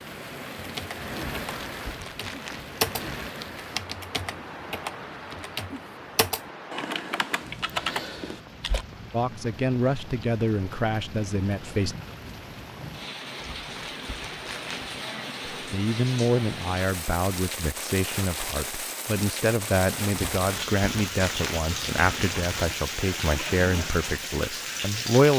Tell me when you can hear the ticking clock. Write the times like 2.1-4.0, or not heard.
not heard.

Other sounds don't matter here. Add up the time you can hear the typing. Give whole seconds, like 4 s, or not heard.
8 s.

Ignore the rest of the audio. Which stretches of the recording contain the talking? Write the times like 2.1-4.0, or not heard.
9.1-11.9, 15.5-25.3.